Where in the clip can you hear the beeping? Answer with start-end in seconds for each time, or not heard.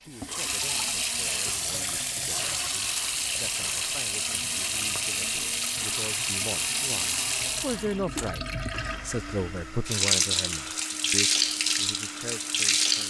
not heard.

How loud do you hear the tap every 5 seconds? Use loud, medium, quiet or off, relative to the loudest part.
medium, medium, loud.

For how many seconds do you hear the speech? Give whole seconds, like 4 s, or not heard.
13 s.